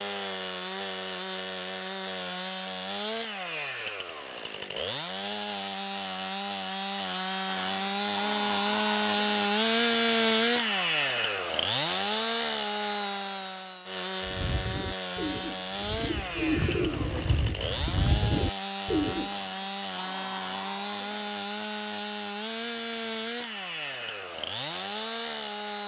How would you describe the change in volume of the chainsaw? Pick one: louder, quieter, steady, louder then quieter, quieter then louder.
louder then quieter.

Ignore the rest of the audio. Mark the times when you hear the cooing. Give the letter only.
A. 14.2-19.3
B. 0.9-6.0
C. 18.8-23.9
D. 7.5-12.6
A.